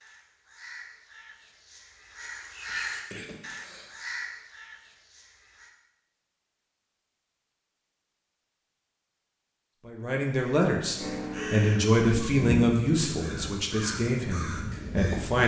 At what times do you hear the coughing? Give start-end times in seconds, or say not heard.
2.6-4.0.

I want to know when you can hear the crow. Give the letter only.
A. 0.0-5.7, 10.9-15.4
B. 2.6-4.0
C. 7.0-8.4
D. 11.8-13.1
A.